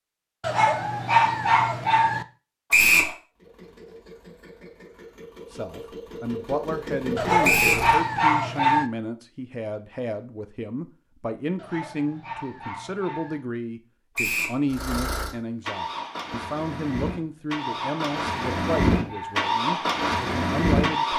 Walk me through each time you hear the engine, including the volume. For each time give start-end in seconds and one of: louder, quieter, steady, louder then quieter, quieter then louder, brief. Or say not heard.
3.4-8.0 louder
14.7-21.1 louder.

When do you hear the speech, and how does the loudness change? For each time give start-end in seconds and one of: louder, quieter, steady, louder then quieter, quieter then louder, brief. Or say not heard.
5.5-21.1 steady.